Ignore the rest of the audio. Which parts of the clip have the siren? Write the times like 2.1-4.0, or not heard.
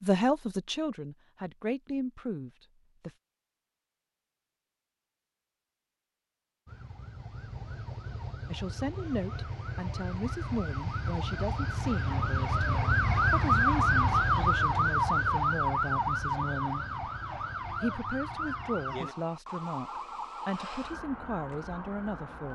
6.7-22.5.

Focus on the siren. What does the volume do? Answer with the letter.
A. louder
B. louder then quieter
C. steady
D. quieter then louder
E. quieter
B.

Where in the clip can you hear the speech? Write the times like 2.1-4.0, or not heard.
0.0-3.1, 8.5-16.9, 17.8-22.5.